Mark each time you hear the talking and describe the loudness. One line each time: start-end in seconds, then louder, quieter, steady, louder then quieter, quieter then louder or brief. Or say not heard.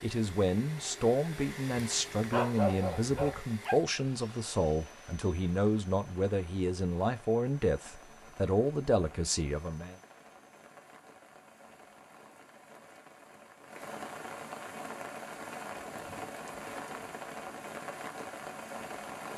0.0-9.9 steady.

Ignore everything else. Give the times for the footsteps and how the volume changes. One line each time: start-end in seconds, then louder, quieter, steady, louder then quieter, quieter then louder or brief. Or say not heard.
not heard.